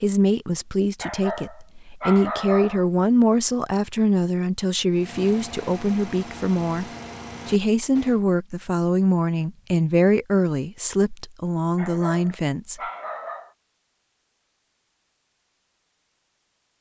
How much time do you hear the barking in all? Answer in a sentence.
The barking can be heard for 4 seconds in total.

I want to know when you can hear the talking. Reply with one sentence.
You can hear the talking from 0.0 to 6.8 s and from 7.5 to 12.8 s.